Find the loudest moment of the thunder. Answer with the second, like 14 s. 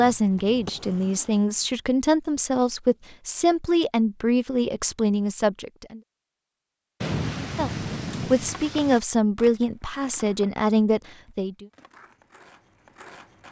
7 s.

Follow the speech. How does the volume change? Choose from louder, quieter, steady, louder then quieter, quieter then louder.
steady.